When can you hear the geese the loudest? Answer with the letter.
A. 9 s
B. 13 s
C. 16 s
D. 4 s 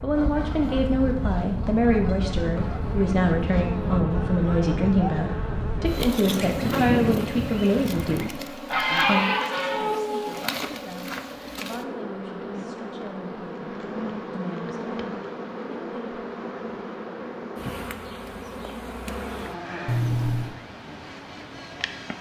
A.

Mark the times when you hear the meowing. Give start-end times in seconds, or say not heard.
2.5-3.1, 9.3-10.5, 19.9-20.6.